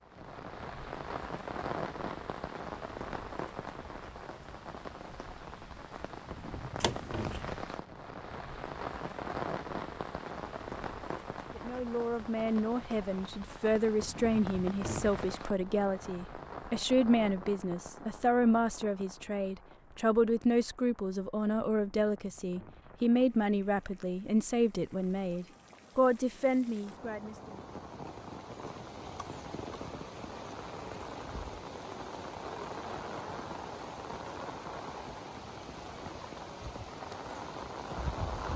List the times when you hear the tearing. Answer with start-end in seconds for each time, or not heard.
not heard.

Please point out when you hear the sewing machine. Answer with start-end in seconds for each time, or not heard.
not heard.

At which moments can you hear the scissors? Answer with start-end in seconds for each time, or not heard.
6.8-7.4.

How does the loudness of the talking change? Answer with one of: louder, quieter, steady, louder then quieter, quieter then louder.
steady.